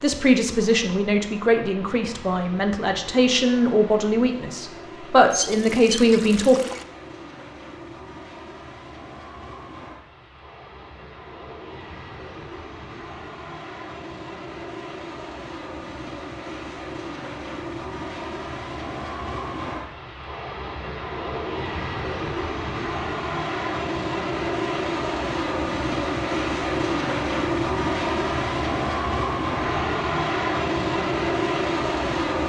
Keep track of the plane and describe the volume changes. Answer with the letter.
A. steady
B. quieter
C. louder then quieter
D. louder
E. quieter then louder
D.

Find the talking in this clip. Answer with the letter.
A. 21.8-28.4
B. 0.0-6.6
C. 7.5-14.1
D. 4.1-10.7
B.